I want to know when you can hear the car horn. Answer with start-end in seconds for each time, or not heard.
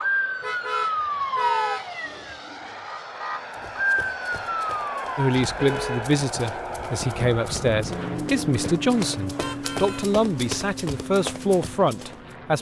0.4-2.4, 5.3-6.1, 9.2-10.1.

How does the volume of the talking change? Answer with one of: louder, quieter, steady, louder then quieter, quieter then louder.
steady.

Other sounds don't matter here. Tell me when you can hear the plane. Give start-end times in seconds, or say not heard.
0.0-12.5.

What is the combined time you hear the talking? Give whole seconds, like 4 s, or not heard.
7 s.